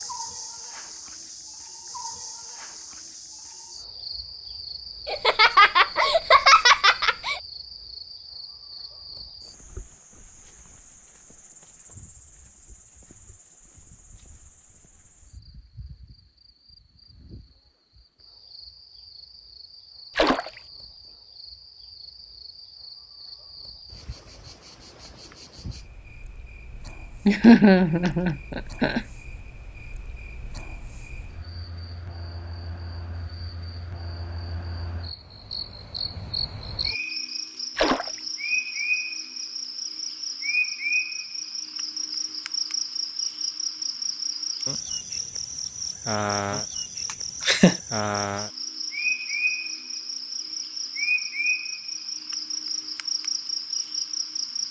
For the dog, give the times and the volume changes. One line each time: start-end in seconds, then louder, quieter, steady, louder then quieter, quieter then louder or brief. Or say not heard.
not heard.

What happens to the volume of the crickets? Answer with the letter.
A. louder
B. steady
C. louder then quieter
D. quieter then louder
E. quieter
D.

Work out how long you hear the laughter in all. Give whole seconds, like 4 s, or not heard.
5 s.